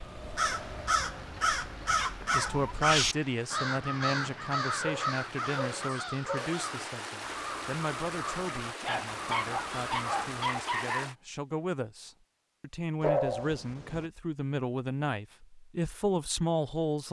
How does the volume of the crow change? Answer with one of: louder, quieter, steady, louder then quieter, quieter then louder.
quieter.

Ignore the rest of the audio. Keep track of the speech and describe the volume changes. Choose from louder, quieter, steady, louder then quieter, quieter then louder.
quieter then louder.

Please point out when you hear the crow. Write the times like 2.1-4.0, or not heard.
0.0-10.4.